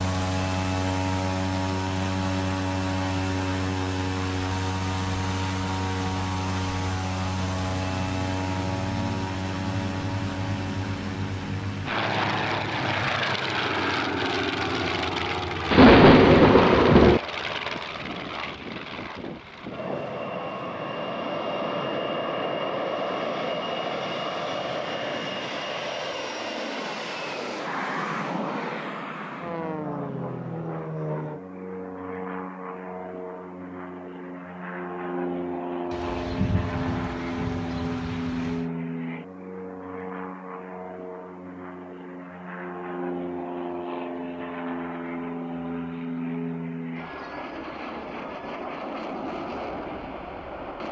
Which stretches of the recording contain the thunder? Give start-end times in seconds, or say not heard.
15.7-17.2, 35.9-38.6.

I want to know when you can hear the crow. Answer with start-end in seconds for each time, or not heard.
not heard.